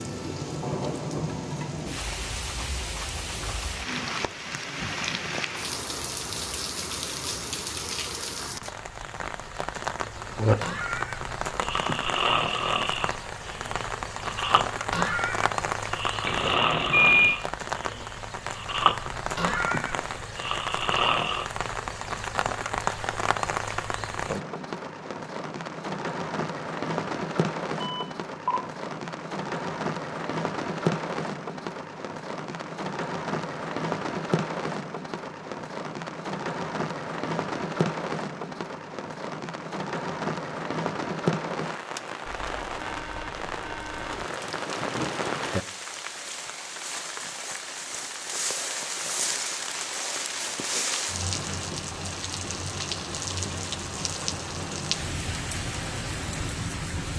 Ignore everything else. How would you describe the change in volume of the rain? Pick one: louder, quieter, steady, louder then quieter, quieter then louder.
steady.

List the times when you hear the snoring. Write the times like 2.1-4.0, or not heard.
10.2-21.4.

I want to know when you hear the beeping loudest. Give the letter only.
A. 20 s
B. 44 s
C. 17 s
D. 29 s
C.